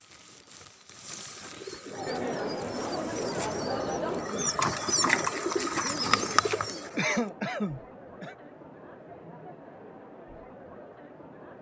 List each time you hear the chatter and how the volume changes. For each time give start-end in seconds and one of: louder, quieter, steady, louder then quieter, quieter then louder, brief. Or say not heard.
1.9-11.5 quieter.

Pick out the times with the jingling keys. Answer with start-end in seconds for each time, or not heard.
not heard.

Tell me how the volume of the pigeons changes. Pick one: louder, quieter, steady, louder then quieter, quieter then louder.
louder.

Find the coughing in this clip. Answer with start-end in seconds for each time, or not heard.
7.0-8.3.